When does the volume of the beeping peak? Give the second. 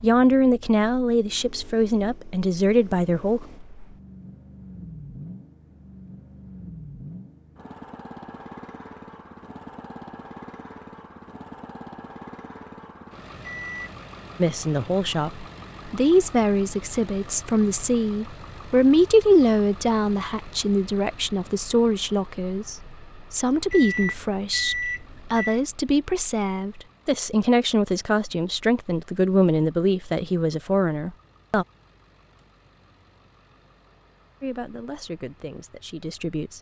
25 s.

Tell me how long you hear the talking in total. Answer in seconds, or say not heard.
23 s.